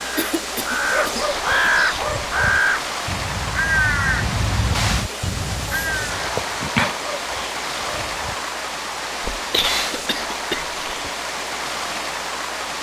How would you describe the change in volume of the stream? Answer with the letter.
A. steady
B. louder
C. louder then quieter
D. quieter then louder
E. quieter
A.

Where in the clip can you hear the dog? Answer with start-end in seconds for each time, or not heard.
0.9-2.6, 6.8-8.3.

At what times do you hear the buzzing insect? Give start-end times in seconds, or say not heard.
not heard.